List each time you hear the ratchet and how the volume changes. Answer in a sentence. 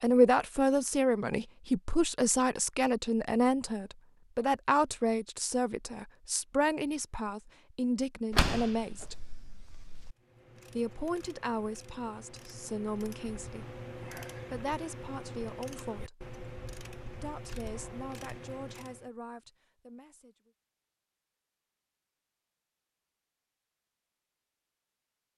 You can hear the ratchet from 10.2 to 19.1 s, getting louder.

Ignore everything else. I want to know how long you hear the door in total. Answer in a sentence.
You can hear the door for 2 seconds altogether.